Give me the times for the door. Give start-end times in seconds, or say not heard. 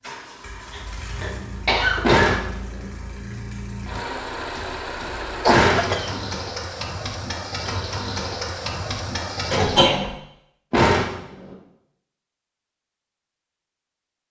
2.0-2.9, 5.5-6.3, 10.7-11.6.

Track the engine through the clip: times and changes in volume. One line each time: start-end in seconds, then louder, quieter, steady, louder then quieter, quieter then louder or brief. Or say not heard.
0.0-9.8 louder.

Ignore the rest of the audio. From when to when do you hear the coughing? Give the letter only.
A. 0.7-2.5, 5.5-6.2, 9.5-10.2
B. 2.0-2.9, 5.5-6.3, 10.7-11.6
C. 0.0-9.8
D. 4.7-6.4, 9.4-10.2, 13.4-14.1
A.